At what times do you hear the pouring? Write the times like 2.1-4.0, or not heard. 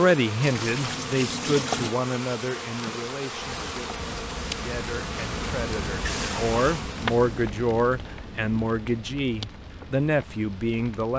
0.4-1.9, 5.8-6.8.